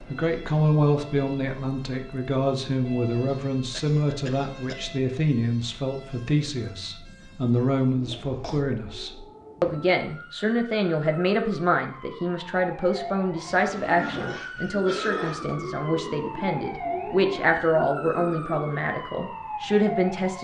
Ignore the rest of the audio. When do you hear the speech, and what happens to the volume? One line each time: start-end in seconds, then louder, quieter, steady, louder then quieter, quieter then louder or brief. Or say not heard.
0.1-20.3 steady.